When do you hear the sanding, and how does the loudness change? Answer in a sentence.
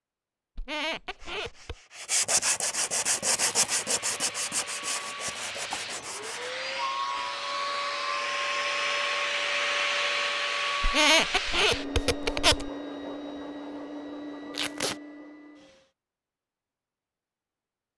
The sanding can be heard from 1.1 to 6.5 s, getting quieter.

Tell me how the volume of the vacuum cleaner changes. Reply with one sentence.
The volume of the vacuum cleaner goes up, then down.